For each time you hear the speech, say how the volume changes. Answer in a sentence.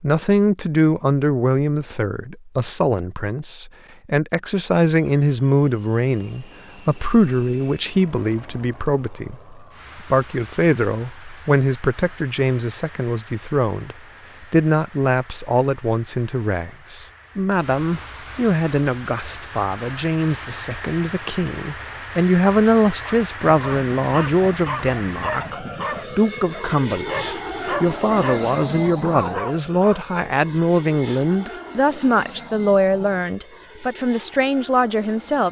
The speech can be heard from 0.0 to 35.4 s, at a steady volume.